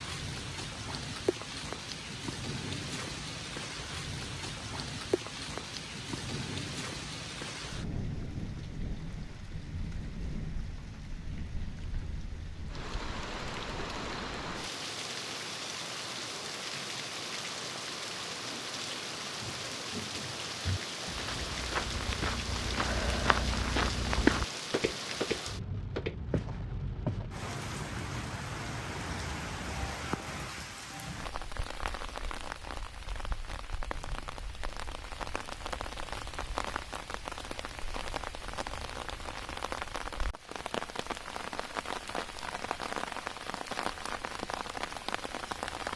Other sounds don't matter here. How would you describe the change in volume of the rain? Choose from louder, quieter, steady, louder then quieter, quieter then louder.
steady.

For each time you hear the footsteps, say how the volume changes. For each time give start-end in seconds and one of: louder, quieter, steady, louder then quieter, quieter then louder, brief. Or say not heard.
19.4-27.2 louder then quieter.